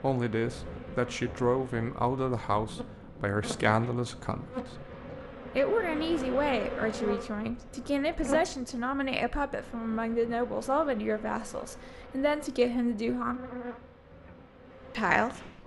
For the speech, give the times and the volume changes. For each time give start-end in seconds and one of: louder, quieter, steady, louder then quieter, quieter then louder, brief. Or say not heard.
0.0-4.9 steady
5.5-13.4 steady
14.9-15.3 brief.